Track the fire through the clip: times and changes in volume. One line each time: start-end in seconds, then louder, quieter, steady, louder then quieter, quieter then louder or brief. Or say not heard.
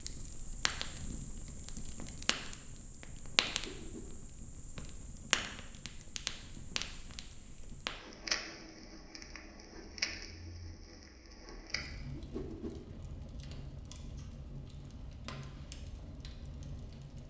0.0-17.2 quieter.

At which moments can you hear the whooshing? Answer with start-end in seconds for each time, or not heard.
3.5-4.1, 12.1-12.8.